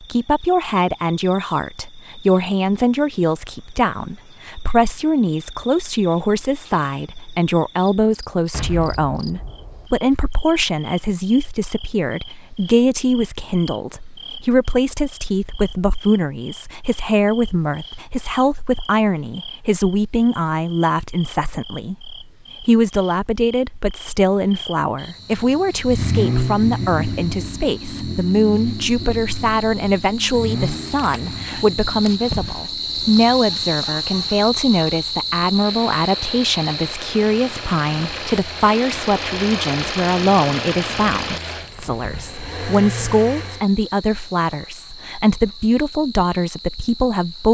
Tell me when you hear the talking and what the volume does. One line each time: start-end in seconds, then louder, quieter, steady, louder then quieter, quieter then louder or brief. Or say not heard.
0.0-47.4 steady.